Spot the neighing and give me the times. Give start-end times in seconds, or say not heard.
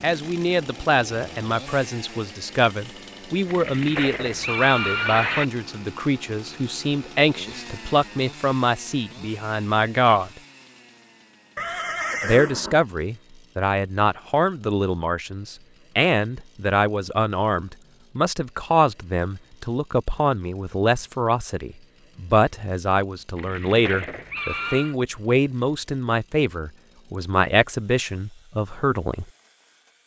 3.5-5.5, 11.6-12.8, 23.4-24.9.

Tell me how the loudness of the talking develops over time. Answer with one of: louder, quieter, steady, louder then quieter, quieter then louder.
steady.